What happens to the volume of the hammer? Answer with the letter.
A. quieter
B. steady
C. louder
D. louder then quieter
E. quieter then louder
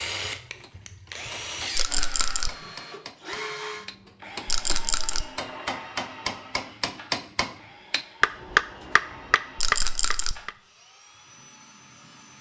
C.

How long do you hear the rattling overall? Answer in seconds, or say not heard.
2 s.